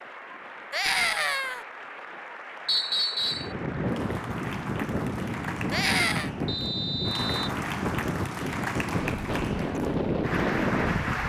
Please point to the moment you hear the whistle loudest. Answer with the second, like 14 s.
3 s.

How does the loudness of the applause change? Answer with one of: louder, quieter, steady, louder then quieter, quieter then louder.
louder.